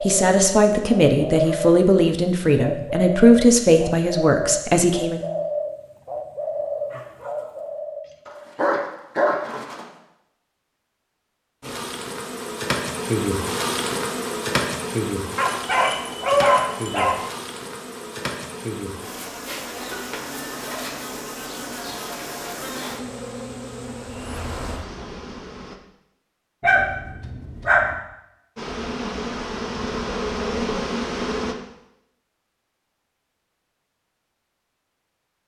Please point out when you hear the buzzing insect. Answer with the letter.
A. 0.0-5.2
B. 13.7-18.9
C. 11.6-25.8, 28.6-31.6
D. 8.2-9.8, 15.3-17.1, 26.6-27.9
C.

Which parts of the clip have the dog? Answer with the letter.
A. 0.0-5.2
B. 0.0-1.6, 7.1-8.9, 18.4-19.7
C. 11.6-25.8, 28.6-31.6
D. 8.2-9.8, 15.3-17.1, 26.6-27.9
D.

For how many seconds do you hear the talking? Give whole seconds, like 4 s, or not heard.
5 s.